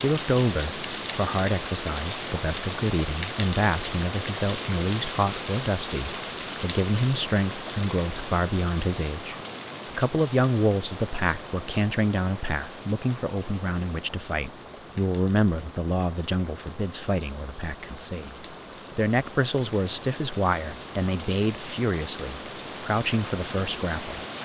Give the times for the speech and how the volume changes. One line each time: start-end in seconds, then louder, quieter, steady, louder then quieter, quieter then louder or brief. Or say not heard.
0.0-24.2 steady.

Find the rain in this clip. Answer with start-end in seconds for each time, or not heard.
0.0-24.4.